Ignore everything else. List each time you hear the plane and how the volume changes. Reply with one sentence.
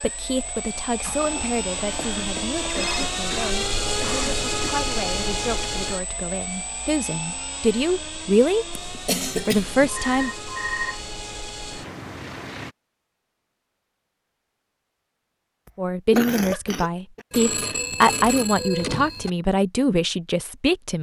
The plane can be heard from 0.0 to 12.8 s, getting louder then quieter.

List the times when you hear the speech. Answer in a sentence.
You can hear the speech from 0.0 to 10.3 s and from 15.8 to 20.9 s.